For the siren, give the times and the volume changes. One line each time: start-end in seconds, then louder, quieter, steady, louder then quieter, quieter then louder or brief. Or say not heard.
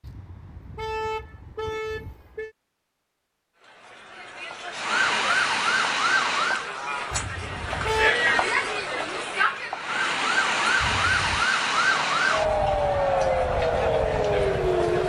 4.7-6.7 brief
9.7-15.0 steady.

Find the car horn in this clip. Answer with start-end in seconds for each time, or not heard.
0.0-2.5, 7.1-8.2, 10.8-11.4.